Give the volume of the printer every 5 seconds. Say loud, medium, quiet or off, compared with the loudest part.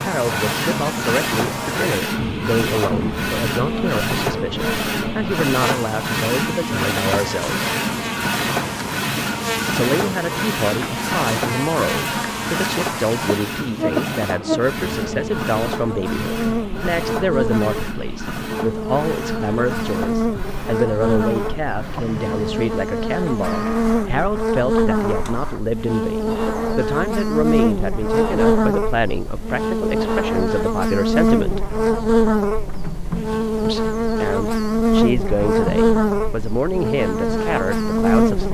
loud, loud, loud, medium, medium, medium, medium, medium.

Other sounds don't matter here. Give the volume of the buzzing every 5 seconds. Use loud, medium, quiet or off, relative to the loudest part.
medium, medium, medium, medium, loud, loud, loud, loud.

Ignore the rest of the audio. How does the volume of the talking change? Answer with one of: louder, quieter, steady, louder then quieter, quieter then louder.
steady.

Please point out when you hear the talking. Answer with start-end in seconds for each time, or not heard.
0.0-7.7, 9.7-31.6, 33.6-38.5.